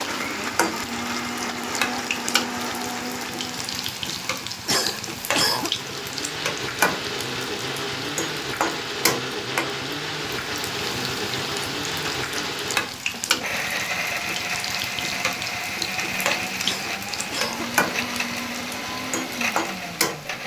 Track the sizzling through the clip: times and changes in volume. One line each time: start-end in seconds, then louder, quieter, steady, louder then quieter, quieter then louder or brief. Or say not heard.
0.0-20.4 steady.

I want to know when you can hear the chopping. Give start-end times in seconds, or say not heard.
not heard.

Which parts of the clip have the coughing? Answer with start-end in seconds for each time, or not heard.
4.7-5.7, 16.6-17.8.